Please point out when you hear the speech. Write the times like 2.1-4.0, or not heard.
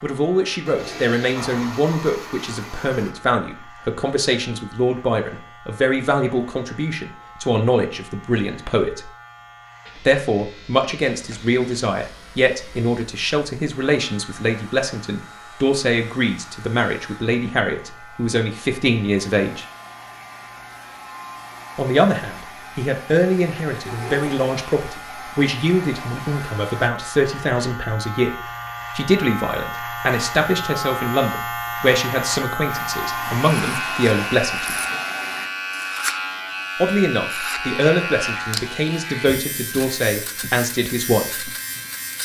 0.0-9.1, 10.1-19.6, 21.8-34.8, 36.8-41.5.